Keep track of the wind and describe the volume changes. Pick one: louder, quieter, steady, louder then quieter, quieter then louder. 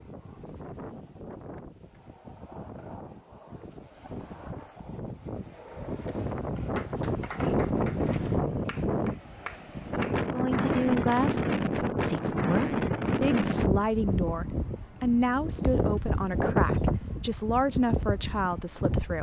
louder.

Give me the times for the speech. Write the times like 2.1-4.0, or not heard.
10.2-19.1.